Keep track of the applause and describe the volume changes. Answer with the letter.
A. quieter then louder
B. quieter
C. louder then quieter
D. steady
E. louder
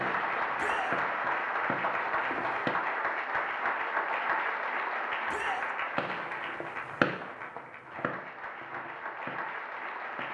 B.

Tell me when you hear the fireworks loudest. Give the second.
7 s.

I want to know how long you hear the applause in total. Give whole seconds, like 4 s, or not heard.
10 s.